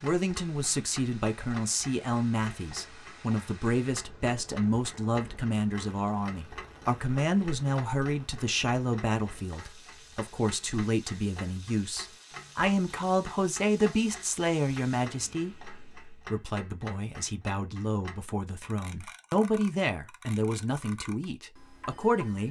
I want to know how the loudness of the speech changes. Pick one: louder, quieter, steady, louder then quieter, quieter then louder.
steady.